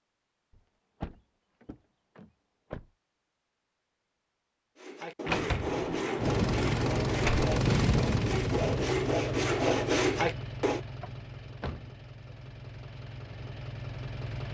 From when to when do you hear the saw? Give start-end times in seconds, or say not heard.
4.8-10.8.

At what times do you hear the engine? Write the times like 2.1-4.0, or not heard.
6.2-14.5.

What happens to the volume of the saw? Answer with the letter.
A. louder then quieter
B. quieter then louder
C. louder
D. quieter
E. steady
C.